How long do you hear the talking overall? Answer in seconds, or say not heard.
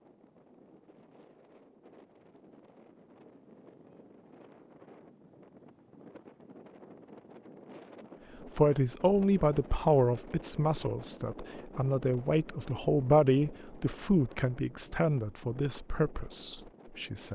9 s.